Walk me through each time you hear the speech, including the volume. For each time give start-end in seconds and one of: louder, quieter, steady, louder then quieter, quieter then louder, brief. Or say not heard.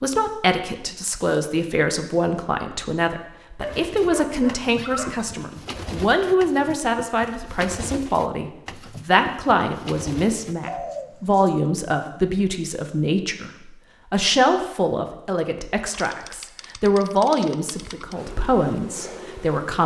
0.0-19.8 steady.